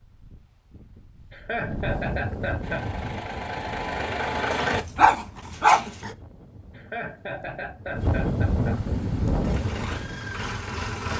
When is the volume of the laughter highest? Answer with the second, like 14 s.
2 s.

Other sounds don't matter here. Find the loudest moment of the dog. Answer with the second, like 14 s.
6 s.